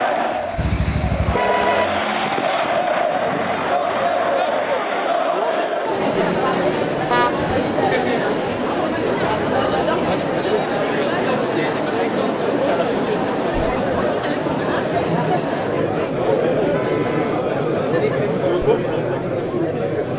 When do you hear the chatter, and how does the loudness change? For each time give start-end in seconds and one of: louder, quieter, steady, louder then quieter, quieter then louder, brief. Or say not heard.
0.0-20.1 steady.